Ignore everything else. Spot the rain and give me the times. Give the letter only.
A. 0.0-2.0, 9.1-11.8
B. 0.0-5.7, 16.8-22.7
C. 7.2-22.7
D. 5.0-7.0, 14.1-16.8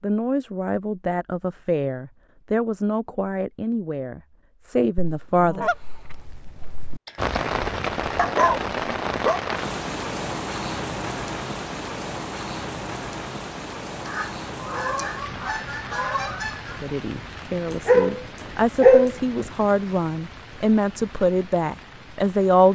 C.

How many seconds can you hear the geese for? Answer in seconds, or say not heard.
5 s.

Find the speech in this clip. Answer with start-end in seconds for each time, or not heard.
0.0-5.7, 16.8-22.7.